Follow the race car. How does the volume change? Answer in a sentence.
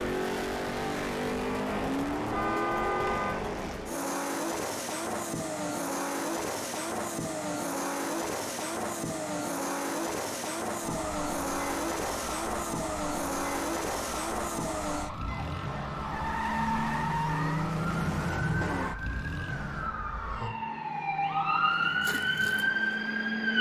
The volume of the race car goes down.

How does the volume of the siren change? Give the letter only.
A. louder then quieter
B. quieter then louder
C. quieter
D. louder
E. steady
D.